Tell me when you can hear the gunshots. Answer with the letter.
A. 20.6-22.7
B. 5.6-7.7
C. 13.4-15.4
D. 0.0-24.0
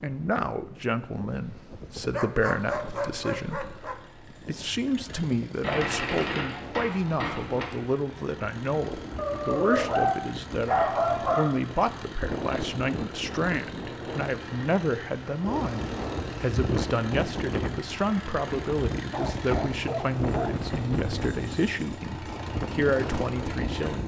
B.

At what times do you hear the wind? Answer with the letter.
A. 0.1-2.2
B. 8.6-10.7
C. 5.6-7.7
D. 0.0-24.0
D.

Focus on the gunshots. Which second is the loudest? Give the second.
6 s.